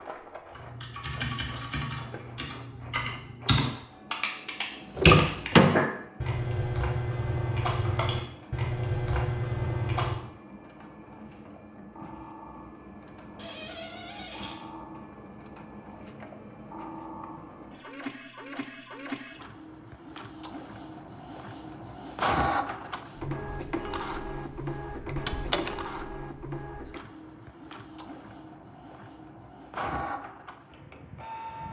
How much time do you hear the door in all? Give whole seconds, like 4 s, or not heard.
3 s.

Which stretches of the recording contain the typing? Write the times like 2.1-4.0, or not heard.
0.6-10.2.